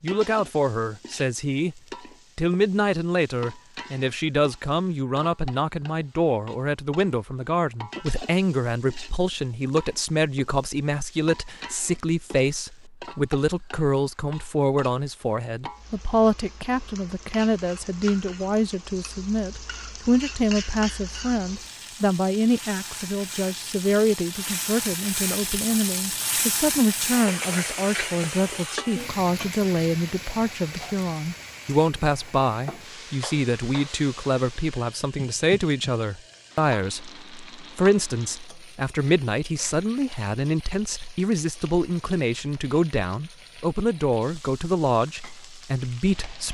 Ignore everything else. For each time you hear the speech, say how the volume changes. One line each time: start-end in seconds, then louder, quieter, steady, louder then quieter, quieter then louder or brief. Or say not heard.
0.0-46.4 steady.